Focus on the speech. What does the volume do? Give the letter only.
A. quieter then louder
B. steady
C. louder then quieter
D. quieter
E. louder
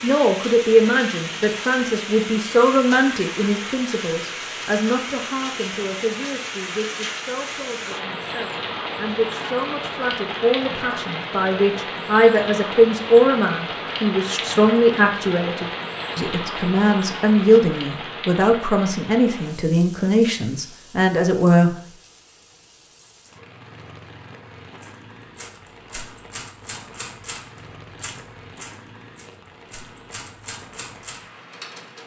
A.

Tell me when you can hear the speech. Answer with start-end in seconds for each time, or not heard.
0.0-21.8.